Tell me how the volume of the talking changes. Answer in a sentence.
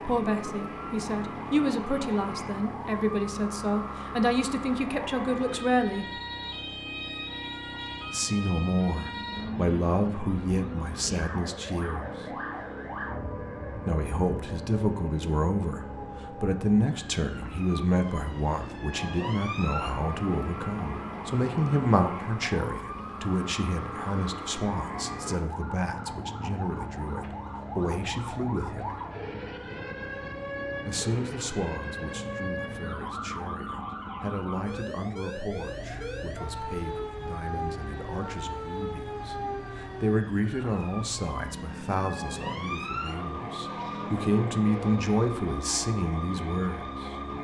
The loudness of the talking goes down, then up.